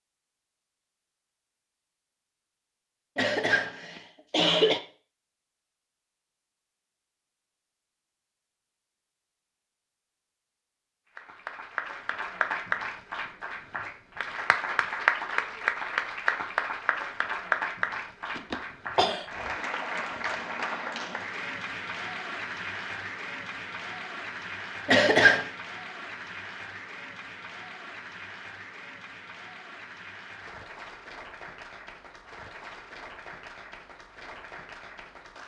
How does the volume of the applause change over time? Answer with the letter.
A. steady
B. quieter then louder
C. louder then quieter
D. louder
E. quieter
E.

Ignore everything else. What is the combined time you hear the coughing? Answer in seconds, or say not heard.
3 s.